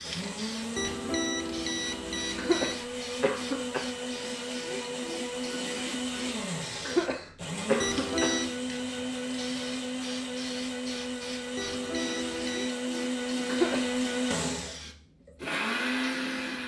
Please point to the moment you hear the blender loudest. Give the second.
14 s.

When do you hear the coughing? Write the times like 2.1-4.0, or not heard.
2.4-3.9, 6.8-8.3, 13.4-13.9.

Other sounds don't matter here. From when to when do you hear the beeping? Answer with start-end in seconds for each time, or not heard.
0.8-2.8, 7.8-8.6, 11.6-12.8.